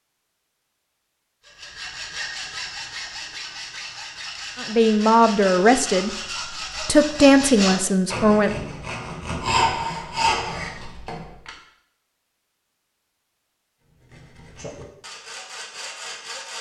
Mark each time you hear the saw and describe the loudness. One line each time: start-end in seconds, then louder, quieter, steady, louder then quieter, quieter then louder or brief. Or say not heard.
1.4-11.5 louder
13.8-16.5 brief.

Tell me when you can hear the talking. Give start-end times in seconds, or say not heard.
4.6-6.1, 6.8-8.5.